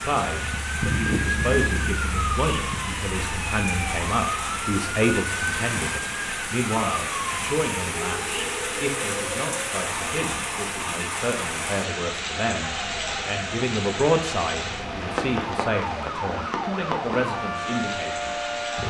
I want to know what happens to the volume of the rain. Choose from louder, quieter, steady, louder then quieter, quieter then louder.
steady.